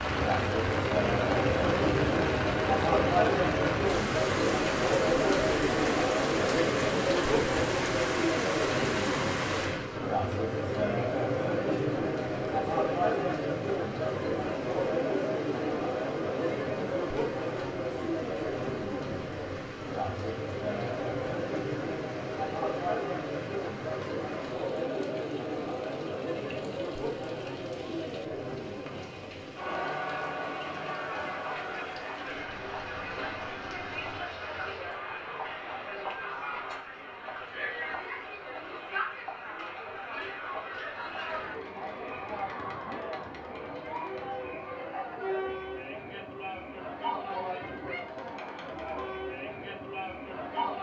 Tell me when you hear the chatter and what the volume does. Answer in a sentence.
You can hear the chatter from 0.0 to 50.7 s, getting quieter.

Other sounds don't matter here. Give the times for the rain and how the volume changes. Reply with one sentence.
You can hear the rain from 0.0 to 35.0 s, getting quieter.